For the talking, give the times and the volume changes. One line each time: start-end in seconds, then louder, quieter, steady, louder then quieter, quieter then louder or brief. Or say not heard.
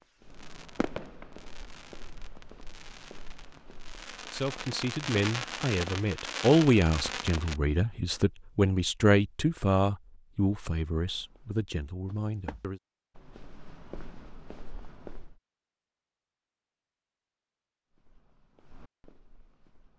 4.3-12.8 louder then quieter.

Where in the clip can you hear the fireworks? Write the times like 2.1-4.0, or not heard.
0.0-7.6.